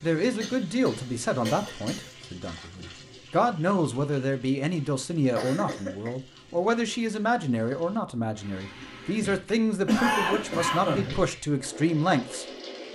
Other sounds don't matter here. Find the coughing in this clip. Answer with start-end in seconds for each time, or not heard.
0.4-2.1, 5.3-6.1, 9.8-11.1.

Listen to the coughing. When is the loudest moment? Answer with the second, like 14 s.
10 s.